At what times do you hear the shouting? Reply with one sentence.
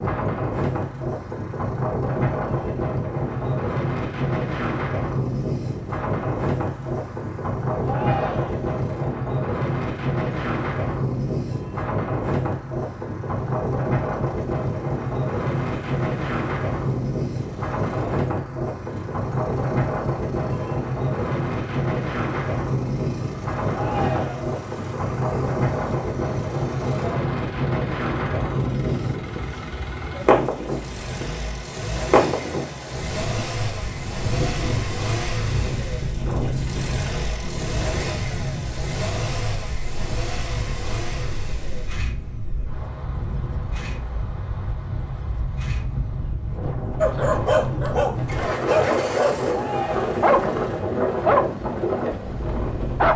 You can hear the shouting from 7.8 to 8.7 s, from 23.7 to 24.6 s and from 49.5 to 50.1 s.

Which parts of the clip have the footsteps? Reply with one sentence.
The footsteps can't be heard in this clip.